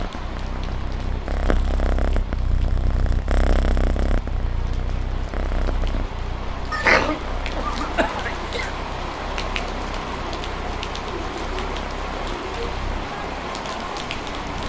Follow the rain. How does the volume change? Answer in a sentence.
The volume of the rain goes up.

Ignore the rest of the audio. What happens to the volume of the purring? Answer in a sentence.
The volume of the purring goes down.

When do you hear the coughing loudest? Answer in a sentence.
The loudest moment of the coughing is at 7 seconds.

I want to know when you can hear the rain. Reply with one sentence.
The rain can be heard from 0.0 to 14.6 s.